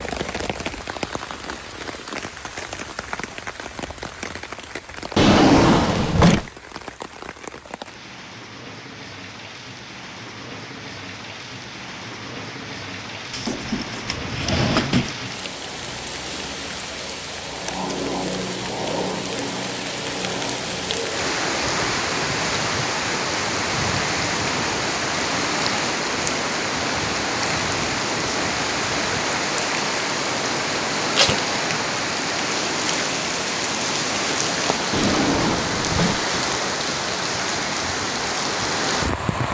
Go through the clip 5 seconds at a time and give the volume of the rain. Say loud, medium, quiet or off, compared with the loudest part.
medium, quiet, medium, medium, loud, loud, loud, loud.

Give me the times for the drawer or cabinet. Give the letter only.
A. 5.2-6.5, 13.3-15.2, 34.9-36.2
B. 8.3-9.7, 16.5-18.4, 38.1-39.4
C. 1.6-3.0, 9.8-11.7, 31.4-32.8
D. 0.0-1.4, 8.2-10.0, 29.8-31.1
A.